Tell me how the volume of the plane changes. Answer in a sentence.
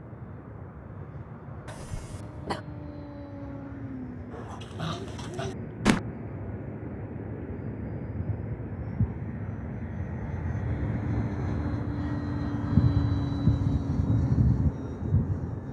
The loudness of the plane goes up.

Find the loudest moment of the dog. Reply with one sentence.
The volume of the dog peaks at 6 seconds.